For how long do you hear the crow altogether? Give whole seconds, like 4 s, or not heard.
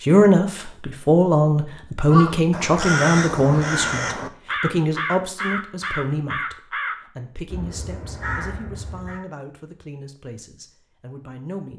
7 s.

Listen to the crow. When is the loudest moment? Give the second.
3 s.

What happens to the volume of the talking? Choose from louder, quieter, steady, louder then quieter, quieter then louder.
quieter.